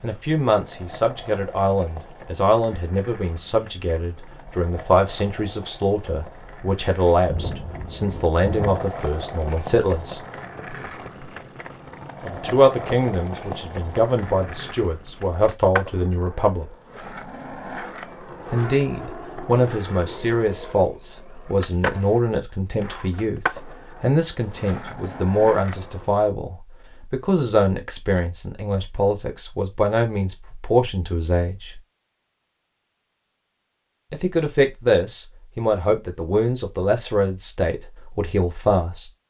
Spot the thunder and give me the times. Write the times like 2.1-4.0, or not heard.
7.2-8.8.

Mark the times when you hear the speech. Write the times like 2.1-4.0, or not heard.
0.0-10.2, 12.2-16.7, 18.5-31.8, 34.1-39.1.